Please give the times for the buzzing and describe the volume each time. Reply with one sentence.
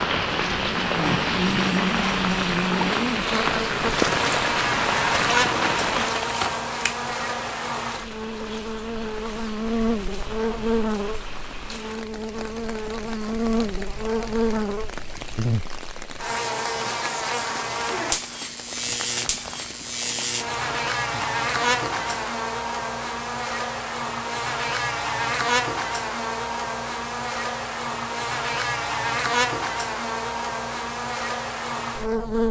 You can hear the buzzing from 0.0 to 32.4 s, at a steady volume.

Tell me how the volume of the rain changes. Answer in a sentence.
The loudness of the rain goes down.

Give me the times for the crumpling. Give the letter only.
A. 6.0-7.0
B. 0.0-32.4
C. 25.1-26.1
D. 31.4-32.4
A.